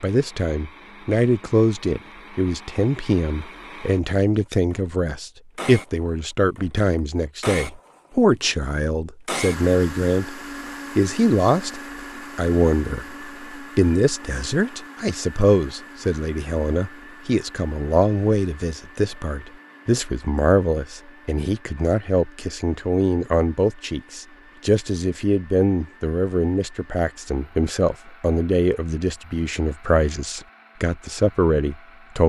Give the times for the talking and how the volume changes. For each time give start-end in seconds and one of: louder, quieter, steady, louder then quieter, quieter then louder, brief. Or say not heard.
0.0-32.2 steady.